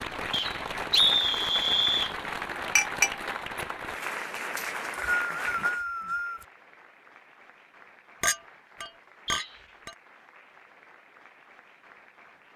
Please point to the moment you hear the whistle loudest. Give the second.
1 s.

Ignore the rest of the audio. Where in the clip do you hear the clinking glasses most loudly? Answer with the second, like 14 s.
3 s.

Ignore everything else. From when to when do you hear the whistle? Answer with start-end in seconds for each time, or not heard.
0.3-2.1, 4.5-6.5, 9.2-9.9.